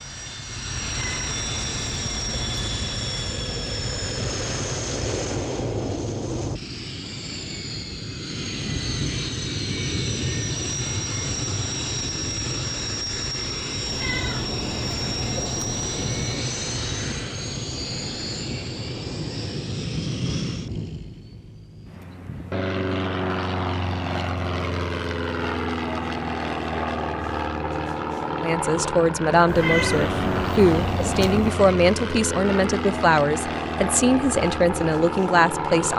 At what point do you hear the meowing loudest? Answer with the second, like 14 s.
30 s.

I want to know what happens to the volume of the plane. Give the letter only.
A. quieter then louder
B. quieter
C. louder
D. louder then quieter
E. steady
E.